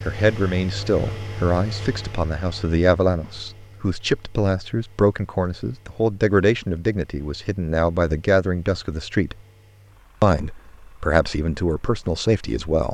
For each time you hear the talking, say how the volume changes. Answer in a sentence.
The talking can be heard from 0.0 to 9.3 s, at a steady volume; and briefly from 10.2 to 12.8 s.